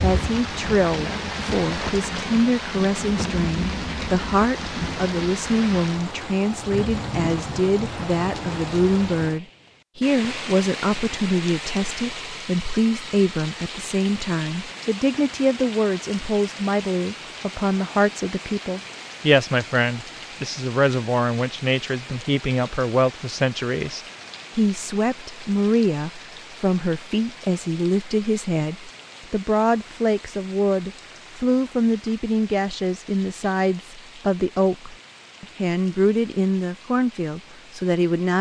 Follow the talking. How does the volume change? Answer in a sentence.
The volume of the talking stays about the same.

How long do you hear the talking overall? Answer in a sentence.
The talking can be heard for 38 seconds in total.